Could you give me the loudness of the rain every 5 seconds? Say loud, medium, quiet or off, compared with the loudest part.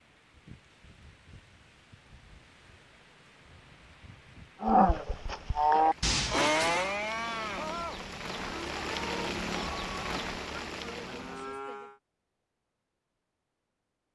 quiet, loud, loud.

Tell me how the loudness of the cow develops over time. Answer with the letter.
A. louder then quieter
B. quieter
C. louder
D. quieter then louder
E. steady
B.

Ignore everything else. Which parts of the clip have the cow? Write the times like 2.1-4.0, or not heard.
4.6-12.0.